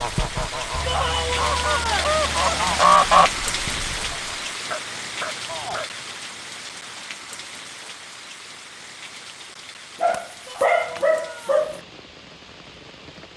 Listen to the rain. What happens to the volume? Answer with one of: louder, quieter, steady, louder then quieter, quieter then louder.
quieter.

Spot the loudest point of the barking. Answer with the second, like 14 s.
11 s.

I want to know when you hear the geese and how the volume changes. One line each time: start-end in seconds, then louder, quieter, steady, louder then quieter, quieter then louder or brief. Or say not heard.
0.0-4.5 louder then quieter.